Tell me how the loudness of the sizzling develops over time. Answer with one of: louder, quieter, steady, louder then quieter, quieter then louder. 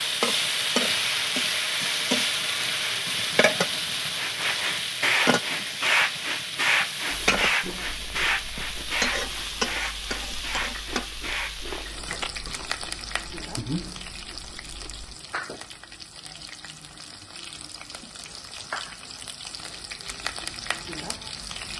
quieter.